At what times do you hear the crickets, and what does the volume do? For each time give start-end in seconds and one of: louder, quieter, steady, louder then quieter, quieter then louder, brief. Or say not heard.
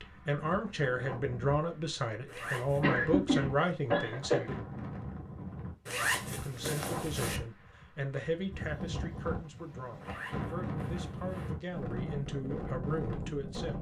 not heard.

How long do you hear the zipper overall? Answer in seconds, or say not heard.
4 s.